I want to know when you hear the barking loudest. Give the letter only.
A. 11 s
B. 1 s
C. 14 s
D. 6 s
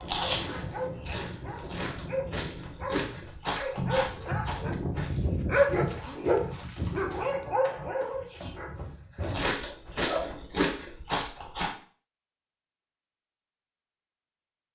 D.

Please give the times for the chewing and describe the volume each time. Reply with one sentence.
You can hear the chewing from 0.0 to 7.2 s, getting louder then quieter; and briefly from 9.2 to 11.7 s.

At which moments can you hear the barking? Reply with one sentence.
The barking can be heard from 0.0 to 10.4 s.